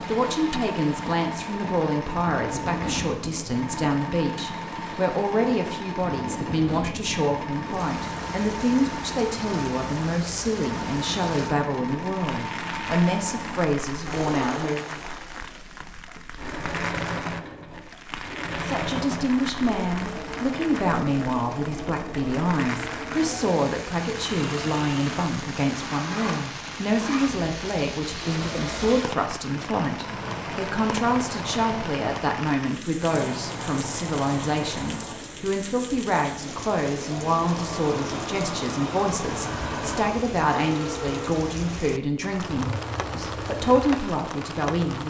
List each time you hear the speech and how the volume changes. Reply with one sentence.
The speech can be heard from 0.0 to 15.0 s, at a steady volume; and from 18.6 to 45.0 s, at a steady volume.